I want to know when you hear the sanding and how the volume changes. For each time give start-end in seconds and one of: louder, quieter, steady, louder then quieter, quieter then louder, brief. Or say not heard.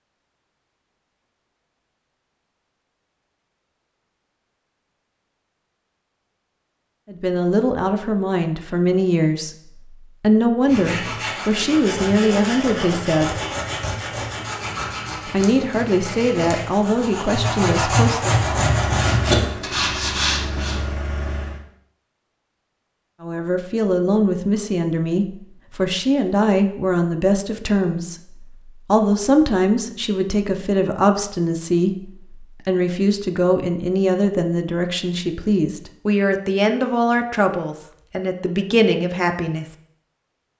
10.7-20.8 louder.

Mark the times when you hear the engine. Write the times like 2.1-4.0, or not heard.
18.3-21.6.